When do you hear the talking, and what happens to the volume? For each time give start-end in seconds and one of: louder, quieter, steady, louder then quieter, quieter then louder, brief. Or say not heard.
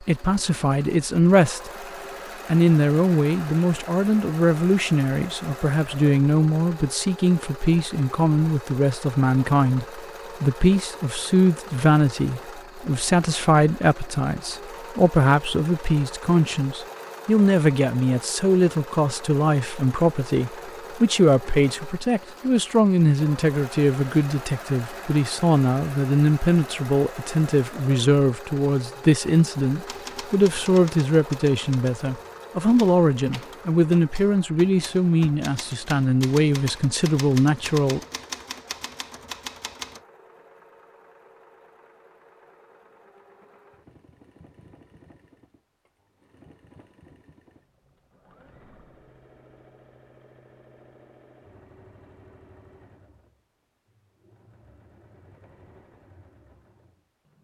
0.0-1.7 brief
2.5-38.0 steady.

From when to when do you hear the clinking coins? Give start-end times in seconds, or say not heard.
not heard.